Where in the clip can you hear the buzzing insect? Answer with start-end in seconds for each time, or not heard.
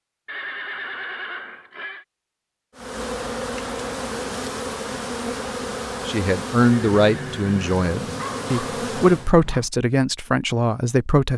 2.8-9.3.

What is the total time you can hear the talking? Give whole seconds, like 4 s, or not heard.
5 s.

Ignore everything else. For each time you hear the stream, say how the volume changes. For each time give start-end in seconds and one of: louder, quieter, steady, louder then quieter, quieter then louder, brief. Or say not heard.
not heard.